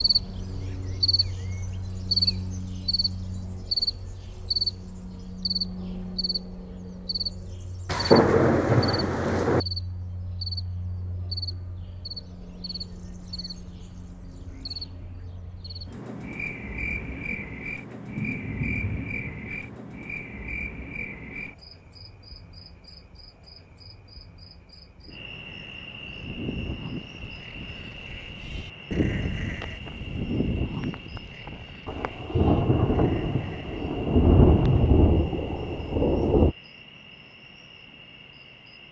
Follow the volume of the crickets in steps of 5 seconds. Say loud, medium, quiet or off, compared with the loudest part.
loud, medium, medium, medium, quiet, quiet, quiet, quiet.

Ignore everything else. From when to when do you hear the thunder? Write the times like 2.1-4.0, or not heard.
7.8-9.6, 16.8-19.6, 31.9-36.5.